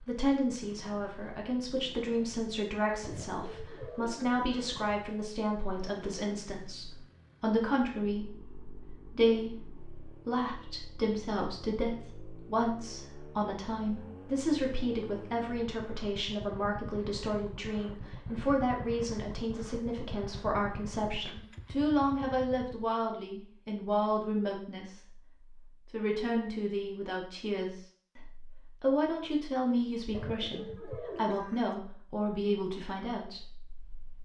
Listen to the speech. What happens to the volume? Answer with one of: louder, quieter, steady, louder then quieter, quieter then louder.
steady.